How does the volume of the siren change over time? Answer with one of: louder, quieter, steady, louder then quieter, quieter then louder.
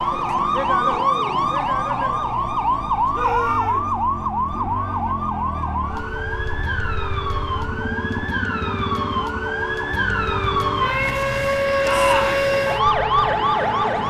quieter then louder.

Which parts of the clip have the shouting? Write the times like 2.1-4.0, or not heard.
3.1-4.0, 11.8-12.4.